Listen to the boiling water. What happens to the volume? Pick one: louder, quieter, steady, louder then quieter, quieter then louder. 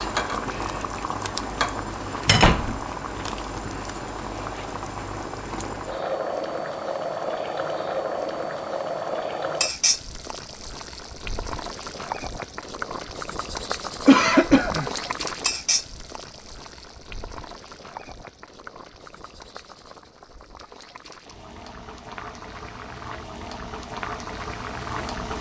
quieter.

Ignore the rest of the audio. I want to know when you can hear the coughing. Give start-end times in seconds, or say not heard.
14.1-14.9.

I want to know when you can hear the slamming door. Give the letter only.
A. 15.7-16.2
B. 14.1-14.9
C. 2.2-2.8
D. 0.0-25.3
C.